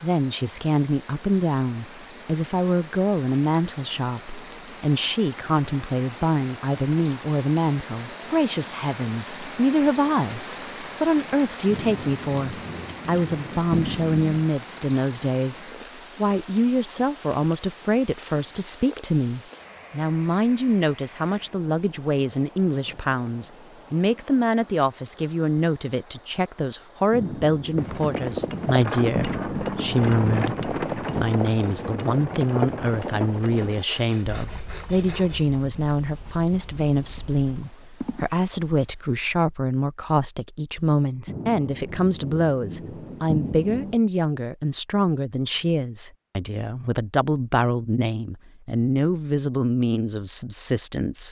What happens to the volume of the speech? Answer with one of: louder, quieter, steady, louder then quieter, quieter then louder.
steady.